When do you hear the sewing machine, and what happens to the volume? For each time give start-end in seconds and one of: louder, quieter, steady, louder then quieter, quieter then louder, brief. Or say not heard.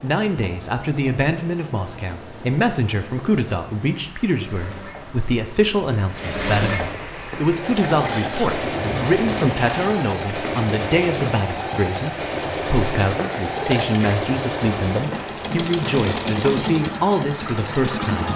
0.0-18.3 louder.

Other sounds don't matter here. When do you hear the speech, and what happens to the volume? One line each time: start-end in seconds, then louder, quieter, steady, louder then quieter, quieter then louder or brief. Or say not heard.
0.0-18.3 steady.